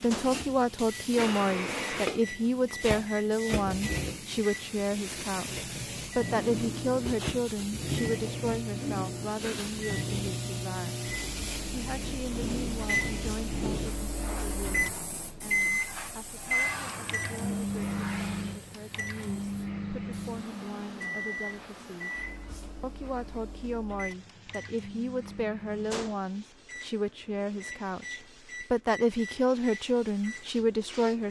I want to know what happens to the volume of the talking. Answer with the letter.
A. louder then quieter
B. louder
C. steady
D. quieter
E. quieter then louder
E.